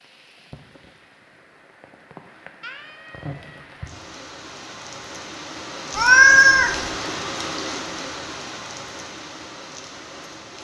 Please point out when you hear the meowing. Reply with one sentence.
The meowing can be heard from 2.6 to 3.6 s and from 6.0 to 6.9 s.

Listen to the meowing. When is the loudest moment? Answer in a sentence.
The volume of the meowing peaks at 6 seconds.